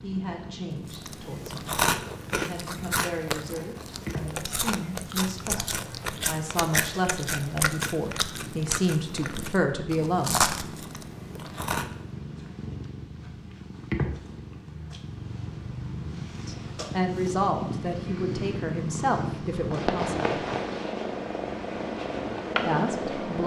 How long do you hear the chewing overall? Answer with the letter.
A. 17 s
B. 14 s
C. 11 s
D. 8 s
C.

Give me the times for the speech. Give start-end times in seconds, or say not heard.
0.0-10.4, 16.4-20.4, 22.6-23.4.